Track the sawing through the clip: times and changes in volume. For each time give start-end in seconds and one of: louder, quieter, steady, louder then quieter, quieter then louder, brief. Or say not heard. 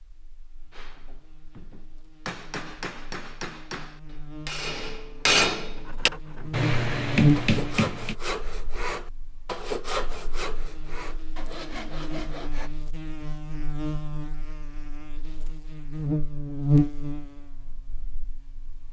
5.8-12.7 louder then quieter.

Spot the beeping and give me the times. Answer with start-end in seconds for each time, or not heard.
not heard.